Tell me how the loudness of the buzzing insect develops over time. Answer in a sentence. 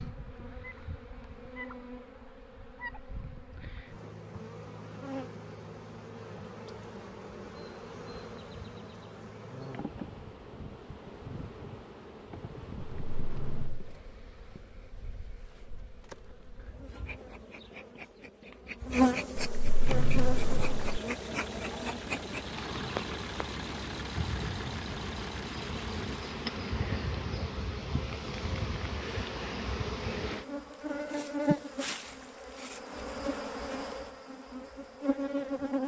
The volume of the buzzing insect goes up.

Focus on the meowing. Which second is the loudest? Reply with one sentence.
The loudest moment of the meowing is at 20 seconds.